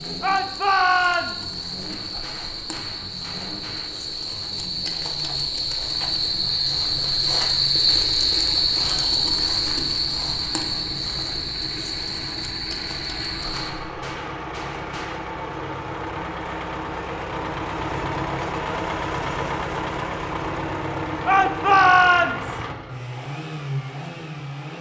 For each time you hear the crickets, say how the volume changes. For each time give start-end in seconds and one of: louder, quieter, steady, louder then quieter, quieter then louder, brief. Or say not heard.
0.0-13.7 louder then quieter.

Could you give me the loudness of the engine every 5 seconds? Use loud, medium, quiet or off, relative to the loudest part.
quiet, quiet, medium, loud, loud.